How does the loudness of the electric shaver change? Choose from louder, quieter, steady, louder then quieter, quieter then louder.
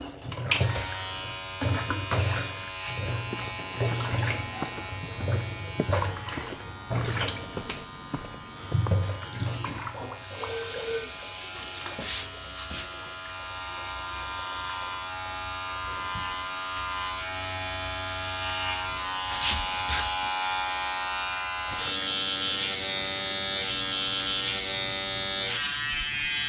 quieter then louder.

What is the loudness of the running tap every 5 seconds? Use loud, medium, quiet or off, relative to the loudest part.
loud, loud, medium, quiet, quiet, quiet.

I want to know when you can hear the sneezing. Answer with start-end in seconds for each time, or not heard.
not heard.